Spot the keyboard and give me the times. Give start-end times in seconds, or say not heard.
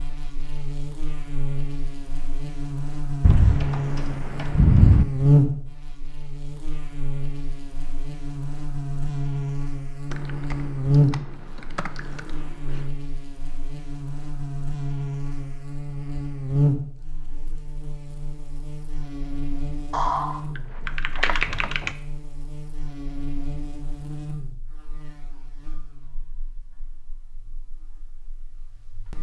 3.2-5.0, 10.1-12.8, 19.9-21.9.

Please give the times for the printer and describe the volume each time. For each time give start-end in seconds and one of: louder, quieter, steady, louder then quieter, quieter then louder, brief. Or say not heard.
not heard.